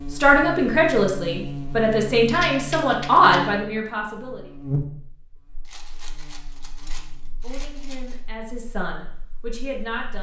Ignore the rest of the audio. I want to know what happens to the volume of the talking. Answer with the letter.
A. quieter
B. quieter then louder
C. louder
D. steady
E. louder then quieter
B.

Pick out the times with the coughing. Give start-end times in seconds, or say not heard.
not heard.